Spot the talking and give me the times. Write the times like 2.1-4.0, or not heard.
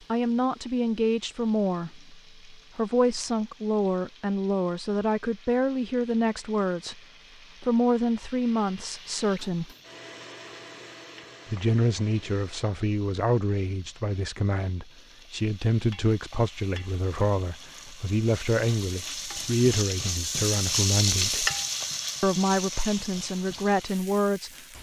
0.1-7.0, 7.6-9.7, 11.4-21.5, 22.2-24.5.